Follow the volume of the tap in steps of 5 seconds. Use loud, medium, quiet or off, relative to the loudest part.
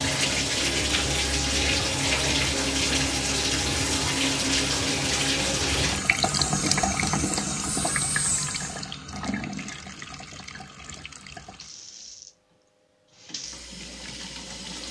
loud, loud, quiet.